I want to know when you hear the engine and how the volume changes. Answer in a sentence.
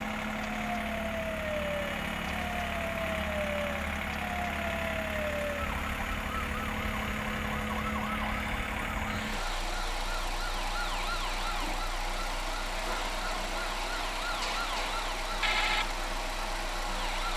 You can hear the engine from 0.0 to 17.3 s, at a steady volume.